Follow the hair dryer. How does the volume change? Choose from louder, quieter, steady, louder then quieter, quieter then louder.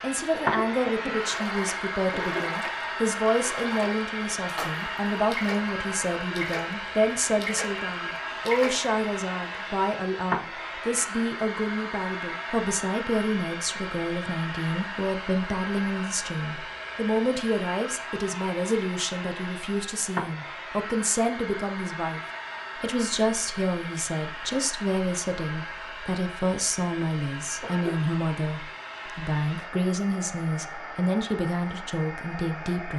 quieter.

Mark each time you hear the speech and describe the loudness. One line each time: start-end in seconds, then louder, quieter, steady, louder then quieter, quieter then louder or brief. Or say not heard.
0.0-22.2 steady
22.8-32.9 steady.